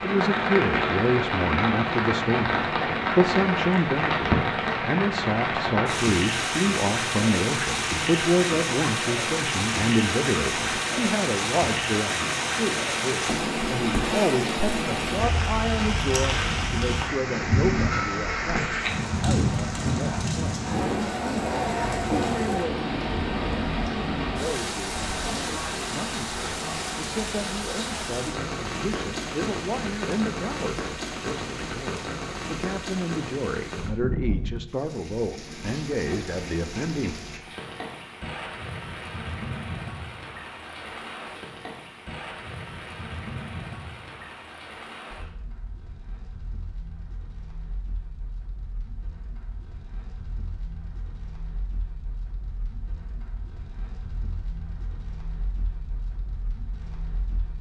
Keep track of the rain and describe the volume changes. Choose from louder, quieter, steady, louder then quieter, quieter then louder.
quieter.